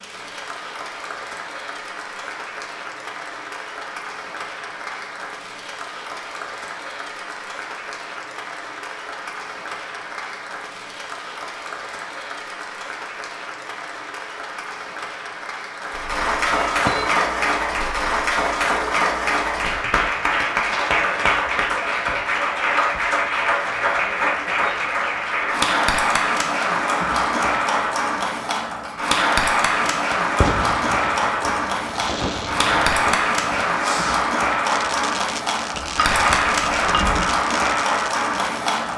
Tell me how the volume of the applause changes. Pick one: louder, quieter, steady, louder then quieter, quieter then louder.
louder.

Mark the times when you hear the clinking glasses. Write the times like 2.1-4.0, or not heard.
16.4-17.2, 35.7-37.4.